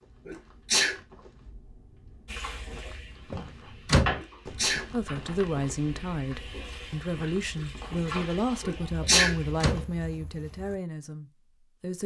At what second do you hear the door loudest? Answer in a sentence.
The loudest moment of the door is at 4 seconds.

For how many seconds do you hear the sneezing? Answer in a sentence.
The sneezing can be heard for 2 seconds in total.